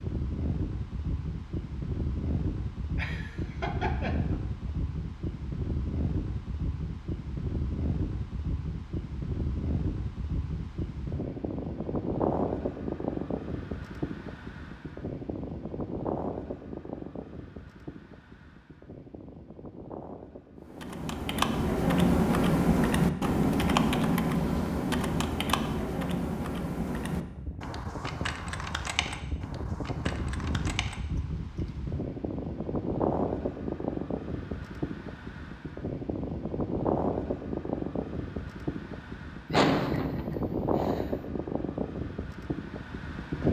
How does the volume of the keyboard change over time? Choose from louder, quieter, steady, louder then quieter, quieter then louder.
quieter.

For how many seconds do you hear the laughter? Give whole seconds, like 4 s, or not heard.
3 s.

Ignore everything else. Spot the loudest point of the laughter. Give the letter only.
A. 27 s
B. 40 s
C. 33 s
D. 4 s
B.